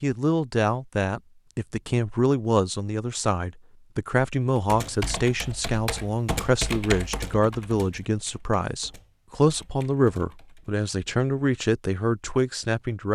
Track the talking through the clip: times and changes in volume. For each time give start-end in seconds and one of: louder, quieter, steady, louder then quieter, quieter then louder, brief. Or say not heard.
0.0-13.0 steady.